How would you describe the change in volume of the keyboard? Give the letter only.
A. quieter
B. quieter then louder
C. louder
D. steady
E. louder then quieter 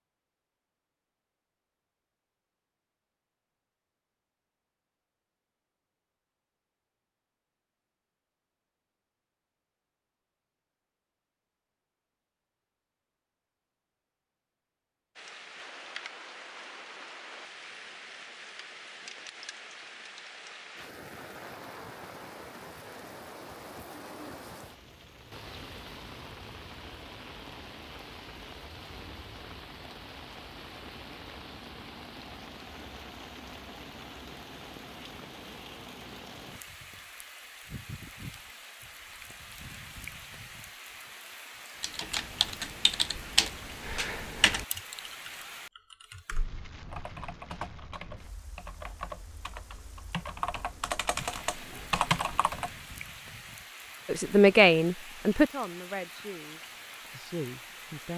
B.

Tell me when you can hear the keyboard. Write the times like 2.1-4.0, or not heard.
41.8-52.7.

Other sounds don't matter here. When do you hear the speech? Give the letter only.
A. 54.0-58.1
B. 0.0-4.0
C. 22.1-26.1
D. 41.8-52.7
A.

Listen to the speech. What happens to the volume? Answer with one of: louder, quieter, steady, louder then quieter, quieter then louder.
quieter then louder.